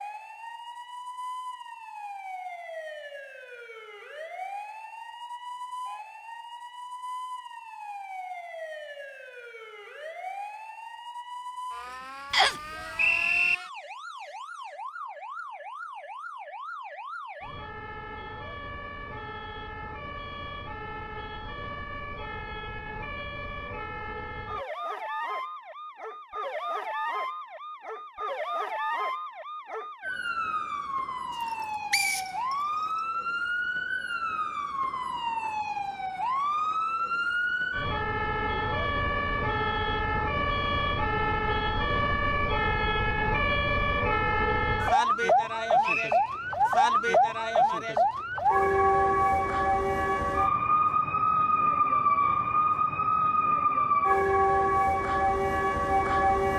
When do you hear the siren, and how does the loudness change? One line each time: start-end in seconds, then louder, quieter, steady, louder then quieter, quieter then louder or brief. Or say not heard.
0.0-56.5 louder.